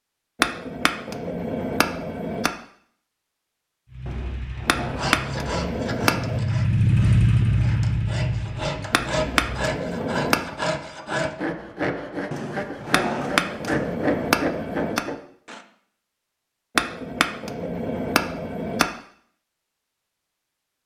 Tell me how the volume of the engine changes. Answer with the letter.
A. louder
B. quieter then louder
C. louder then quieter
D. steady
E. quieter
C.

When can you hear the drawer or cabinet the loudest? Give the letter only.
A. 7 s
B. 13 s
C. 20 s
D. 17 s
B.